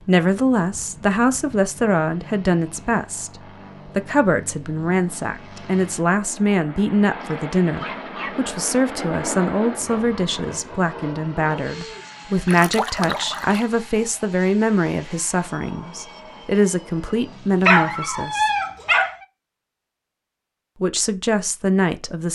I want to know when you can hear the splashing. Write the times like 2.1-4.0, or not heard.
12.4-13.7.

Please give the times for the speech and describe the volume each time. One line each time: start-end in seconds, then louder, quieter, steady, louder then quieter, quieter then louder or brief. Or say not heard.
0.1-18.5 steady
20.8-22.3 brief.